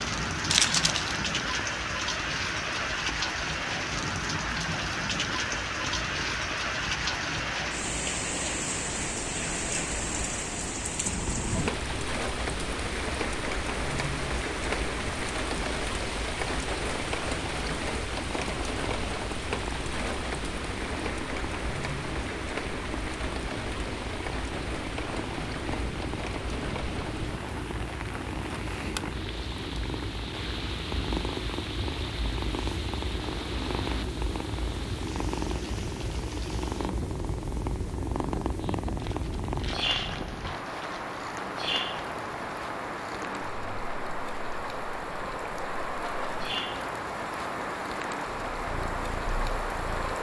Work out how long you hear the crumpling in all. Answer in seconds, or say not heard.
3 s.